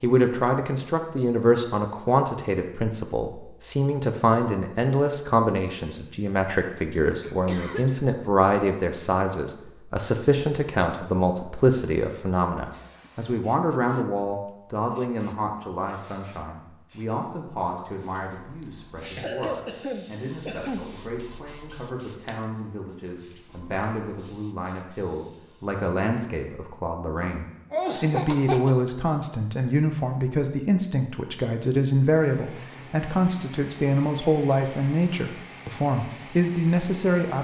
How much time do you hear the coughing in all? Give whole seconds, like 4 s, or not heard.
4 s.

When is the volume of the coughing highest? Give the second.
28 s.